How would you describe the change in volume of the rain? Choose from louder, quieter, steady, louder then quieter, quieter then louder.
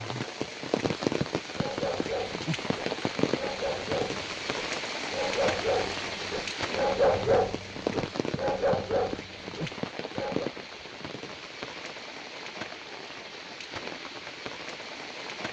quieter.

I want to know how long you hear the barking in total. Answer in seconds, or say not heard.
9 s.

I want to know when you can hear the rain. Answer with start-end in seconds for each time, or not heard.
0.0-15.4.